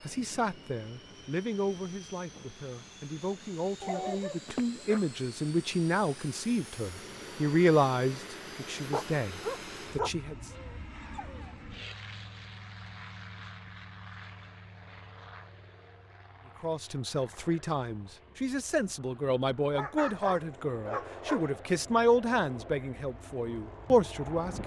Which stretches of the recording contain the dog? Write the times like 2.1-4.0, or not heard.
3.8-5.0, 8.9-11.5, 19.7-21.5.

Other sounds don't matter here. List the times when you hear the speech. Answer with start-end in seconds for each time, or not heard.
0.1-10.3, 16.6-24.6.